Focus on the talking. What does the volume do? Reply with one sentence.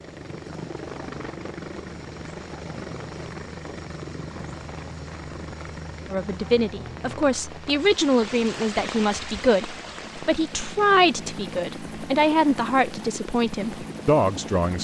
The volume of the talking stays about the same.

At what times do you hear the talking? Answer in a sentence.
The talking can be heard from 6.1 to 14.7 s.